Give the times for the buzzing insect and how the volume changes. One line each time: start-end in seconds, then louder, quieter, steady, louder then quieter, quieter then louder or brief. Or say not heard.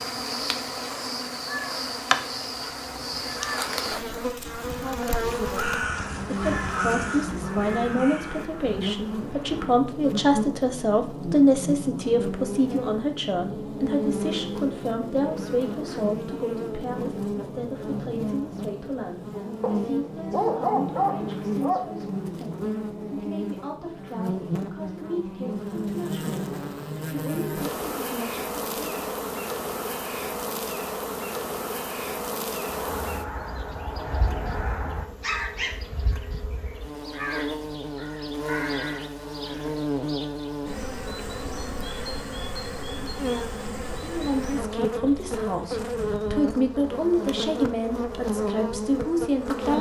0.0-49.7 steady.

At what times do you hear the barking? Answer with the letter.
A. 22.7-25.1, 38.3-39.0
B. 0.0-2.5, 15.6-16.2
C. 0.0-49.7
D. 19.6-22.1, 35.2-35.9
D.